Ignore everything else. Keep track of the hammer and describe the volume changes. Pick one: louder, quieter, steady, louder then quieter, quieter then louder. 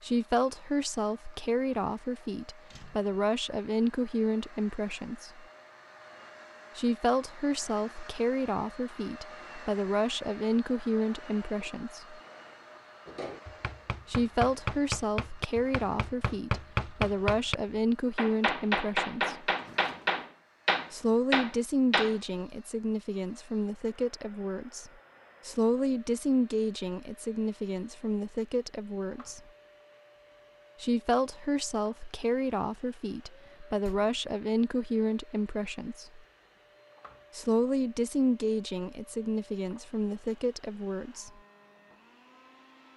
louder.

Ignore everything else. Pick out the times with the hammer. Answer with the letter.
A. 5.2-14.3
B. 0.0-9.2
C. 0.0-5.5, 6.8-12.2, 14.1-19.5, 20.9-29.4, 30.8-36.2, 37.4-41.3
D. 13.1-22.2
D.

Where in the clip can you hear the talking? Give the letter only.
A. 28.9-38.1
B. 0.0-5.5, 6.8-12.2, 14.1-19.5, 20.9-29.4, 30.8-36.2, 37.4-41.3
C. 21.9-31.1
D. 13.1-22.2
B.